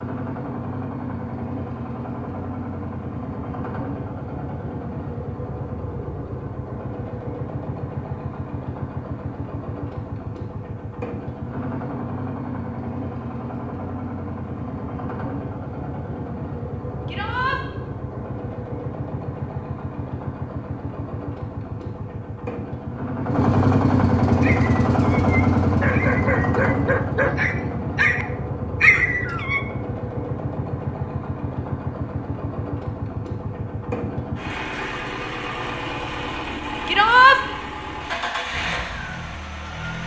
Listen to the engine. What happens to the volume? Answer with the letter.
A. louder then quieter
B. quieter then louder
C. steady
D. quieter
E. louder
A.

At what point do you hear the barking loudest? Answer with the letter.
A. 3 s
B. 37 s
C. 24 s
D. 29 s
D.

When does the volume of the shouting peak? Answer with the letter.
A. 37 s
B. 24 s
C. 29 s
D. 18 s
A.